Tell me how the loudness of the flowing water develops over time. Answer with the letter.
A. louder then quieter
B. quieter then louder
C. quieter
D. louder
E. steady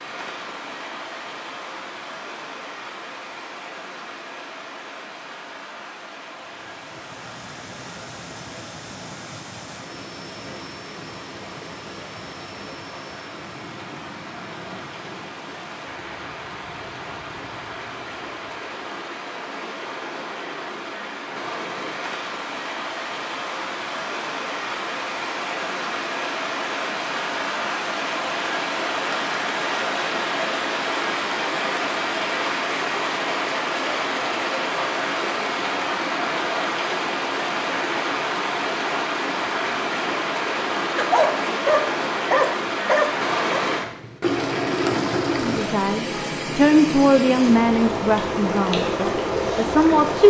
D.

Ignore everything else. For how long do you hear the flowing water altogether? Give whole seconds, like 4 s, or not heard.
50 s.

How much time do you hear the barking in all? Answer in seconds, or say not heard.
3 s.